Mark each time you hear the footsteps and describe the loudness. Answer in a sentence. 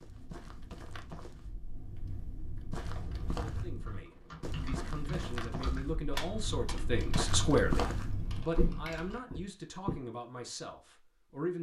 The footsteps can be heard from 0.0 to 10.1 s, getting louder.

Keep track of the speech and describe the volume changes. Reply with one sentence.
The loudness of the speech goes up, then down.